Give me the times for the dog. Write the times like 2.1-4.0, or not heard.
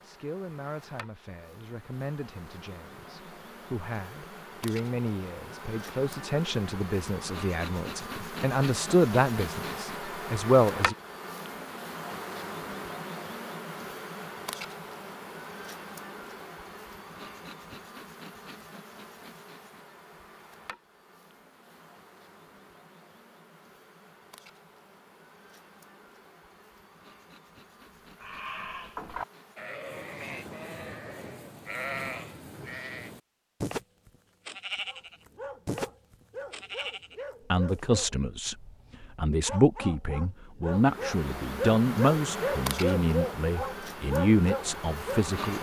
34.9-45.2.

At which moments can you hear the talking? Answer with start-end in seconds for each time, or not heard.
0.0-10.9, 37.5-45.5.